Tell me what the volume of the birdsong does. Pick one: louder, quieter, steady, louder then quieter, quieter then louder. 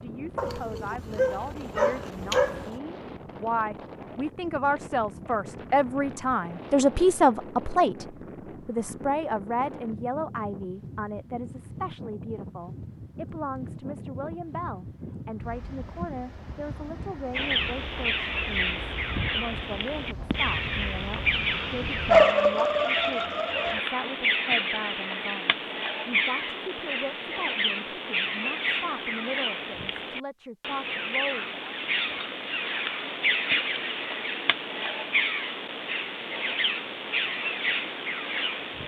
steady.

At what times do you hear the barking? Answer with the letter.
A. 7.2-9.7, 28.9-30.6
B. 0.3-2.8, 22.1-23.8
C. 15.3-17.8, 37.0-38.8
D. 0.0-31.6
B.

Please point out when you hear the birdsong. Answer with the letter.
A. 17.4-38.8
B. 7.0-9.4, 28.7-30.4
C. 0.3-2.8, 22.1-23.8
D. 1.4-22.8
A.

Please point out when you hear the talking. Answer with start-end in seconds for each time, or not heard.
0.0-31.6.